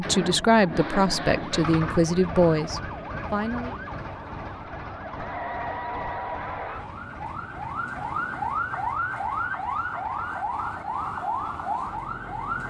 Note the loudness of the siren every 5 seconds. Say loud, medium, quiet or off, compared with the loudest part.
medium, loud, loud.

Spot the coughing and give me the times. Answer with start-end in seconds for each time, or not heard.
not heard.